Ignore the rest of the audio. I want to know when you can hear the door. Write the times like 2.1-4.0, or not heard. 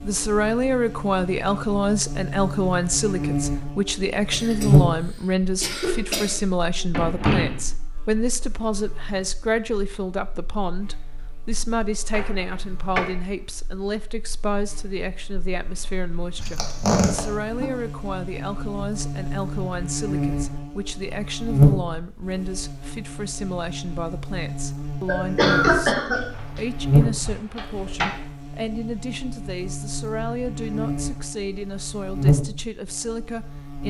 6.1-7.7, 12.1-13.1, 26.1-28.1.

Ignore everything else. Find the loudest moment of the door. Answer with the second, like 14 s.
7 s.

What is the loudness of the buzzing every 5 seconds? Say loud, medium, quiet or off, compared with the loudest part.
loud, quiet, quiet, medium, loud, loud, loud.